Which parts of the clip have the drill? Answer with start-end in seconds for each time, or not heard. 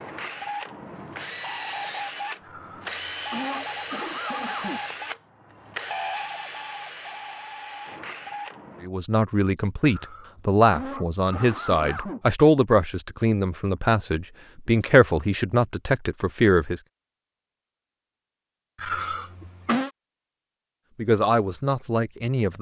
0.0-8.9.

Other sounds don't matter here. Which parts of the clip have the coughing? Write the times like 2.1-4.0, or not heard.
2.4-4.8, 9.8-12.2, 18.8-19.9.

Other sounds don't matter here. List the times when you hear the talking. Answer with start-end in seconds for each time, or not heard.
8.8-16.8, 20.9-22.5.